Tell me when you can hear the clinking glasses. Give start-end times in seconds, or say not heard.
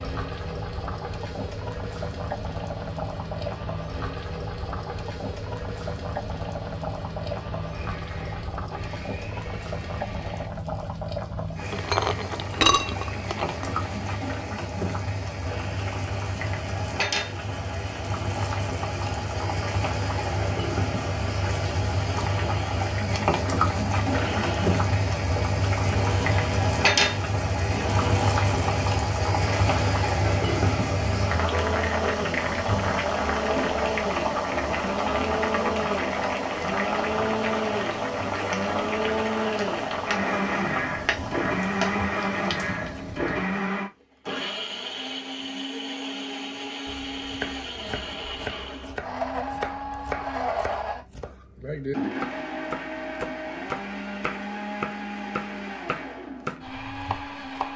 11.7-13.8.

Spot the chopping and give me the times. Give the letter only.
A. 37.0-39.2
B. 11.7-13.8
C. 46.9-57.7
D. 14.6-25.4
C.